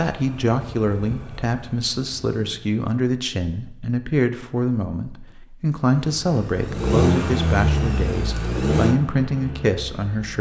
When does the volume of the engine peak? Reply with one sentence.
The loudest moment of the engine is at 7 seconds.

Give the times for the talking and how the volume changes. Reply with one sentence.
The talking can be heard from 0.0 to 10.3 s, at a steady volume.